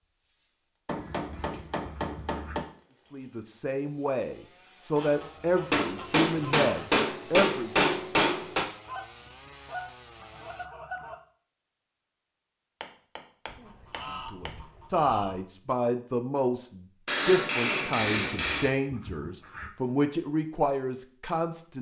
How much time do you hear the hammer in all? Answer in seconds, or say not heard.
8 s.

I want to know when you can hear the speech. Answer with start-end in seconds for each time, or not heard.
3.1-7.9, 14.2-21.7.